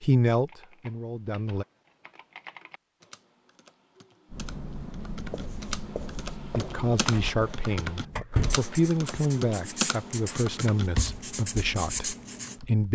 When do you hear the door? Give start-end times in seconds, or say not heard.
7.0-8.6.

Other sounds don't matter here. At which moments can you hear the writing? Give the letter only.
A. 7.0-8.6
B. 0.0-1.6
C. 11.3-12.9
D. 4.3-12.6
D.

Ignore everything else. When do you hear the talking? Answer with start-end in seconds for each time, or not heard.
0.0-1.6, 6.5-12.9.